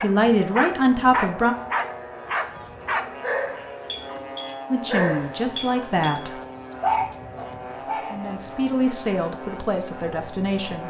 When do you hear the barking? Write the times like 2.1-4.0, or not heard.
0.0-8.2.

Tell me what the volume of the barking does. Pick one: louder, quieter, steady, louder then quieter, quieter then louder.
quieter then louder.